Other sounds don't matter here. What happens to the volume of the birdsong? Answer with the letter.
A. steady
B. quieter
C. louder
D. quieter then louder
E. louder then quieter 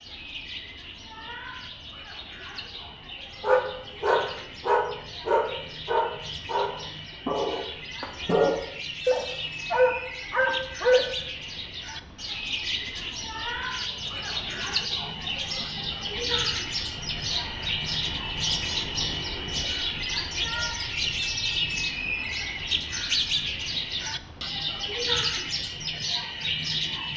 C.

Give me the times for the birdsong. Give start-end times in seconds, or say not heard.
0.0-27.1.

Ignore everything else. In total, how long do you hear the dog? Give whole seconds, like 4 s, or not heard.
8 s.